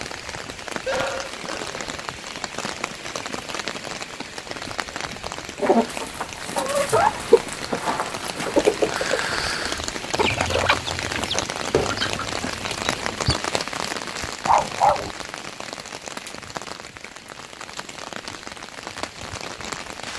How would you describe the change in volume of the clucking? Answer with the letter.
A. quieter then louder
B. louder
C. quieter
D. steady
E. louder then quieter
C.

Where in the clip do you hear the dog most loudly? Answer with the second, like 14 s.
15 s.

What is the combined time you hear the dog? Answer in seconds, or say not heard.
2 s.